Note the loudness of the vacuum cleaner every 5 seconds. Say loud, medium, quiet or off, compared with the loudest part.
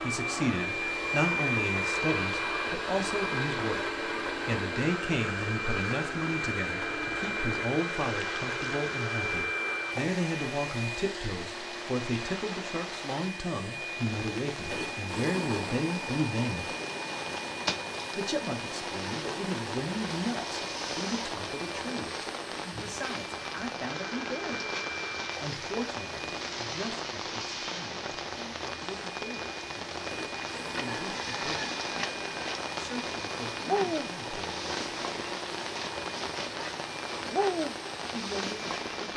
loud, loud, medium, medium, medium, medium, medium, medium.